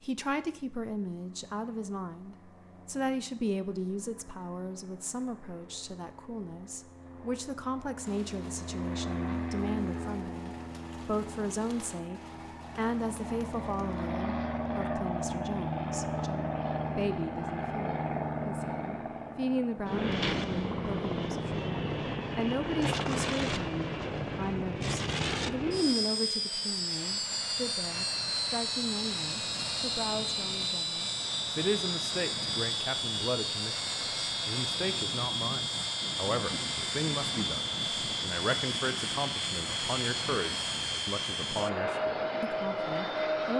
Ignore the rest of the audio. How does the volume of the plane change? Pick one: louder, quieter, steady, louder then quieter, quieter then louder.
louder.